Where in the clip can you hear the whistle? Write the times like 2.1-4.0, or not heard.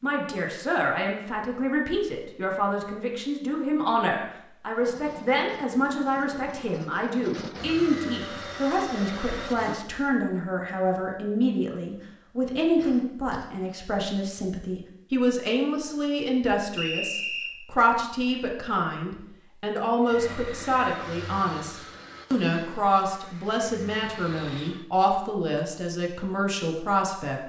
16.8-17.6.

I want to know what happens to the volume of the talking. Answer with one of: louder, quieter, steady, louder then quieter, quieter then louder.
steady.